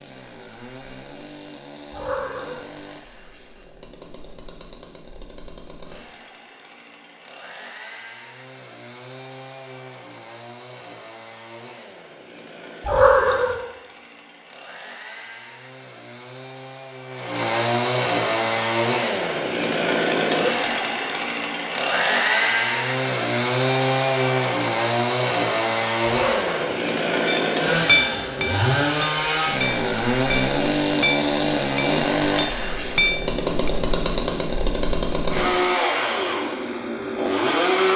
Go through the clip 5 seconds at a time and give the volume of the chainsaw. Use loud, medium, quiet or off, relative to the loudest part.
quiet, quiet, quiet, loud, loud, loud, loud, loud.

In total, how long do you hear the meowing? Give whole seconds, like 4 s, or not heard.
2 s.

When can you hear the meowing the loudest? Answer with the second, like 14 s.
13 s.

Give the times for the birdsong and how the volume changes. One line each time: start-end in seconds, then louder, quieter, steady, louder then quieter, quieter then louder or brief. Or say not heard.
not heard.